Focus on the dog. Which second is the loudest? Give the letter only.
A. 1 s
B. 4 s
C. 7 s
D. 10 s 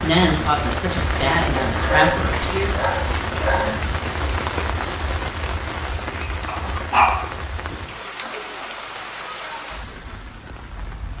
C.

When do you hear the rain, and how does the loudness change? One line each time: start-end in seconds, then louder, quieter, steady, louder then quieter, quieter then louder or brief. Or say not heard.
0.0-11.1 quieter.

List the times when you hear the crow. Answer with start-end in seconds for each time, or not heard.
not heard.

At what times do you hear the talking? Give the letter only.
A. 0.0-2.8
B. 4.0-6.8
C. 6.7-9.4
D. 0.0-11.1
A.